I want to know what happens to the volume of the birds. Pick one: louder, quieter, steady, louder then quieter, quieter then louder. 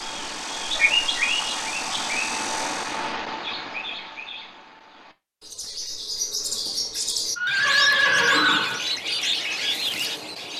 quieter then louder.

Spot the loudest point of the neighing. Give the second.
8 s.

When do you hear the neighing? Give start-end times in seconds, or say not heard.
0.8-2.1, 7.3-8.8.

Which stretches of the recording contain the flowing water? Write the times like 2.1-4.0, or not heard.
not heard.